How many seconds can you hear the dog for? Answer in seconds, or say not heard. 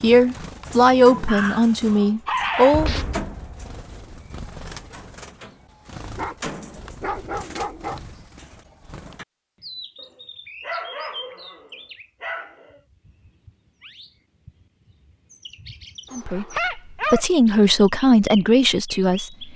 8 s.